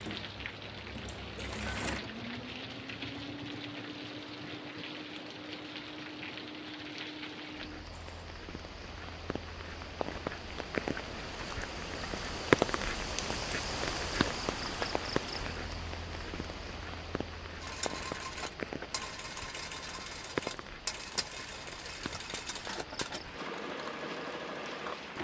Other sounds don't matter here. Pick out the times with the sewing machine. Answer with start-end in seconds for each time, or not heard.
0.0-8.3, 17.6-25.2.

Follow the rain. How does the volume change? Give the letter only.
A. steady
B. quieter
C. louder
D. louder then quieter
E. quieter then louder
D.